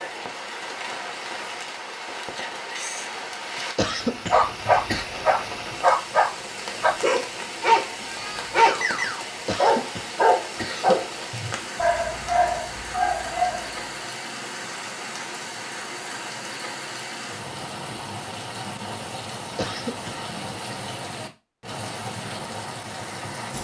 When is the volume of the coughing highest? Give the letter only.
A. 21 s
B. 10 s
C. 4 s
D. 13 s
C.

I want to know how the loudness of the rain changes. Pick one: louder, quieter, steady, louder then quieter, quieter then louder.
steady.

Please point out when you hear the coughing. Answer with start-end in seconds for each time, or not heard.
3.8-5.0, 9.4-11.0, 19.6-20.8.